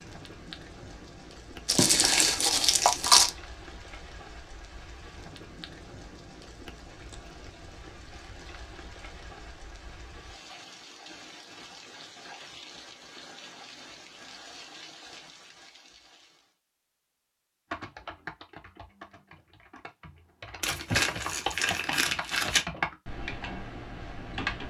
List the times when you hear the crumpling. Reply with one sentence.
The crumpling can be heard from 1.6 to 3.3 s and from 20.6 to 22.6 s.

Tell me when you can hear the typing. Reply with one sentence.
You can hear the typing from 17.7 to 24.6 s.